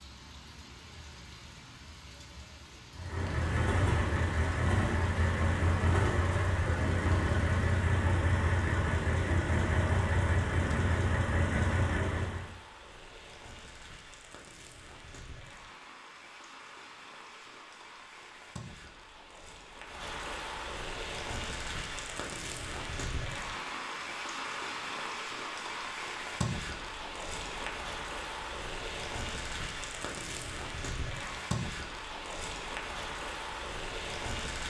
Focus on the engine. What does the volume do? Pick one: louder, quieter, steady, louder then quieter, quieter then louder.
steady.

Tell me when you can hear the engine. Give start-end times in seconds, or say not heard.
2.9-12.5.